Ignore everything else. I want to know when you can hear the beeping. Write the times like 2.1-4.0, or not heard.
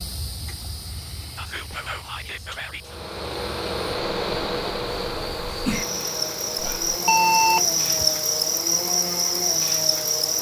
7.0-8.2.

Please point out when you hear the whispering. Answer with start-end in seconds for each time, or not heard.
1.4-3.0, 6.5-7.0.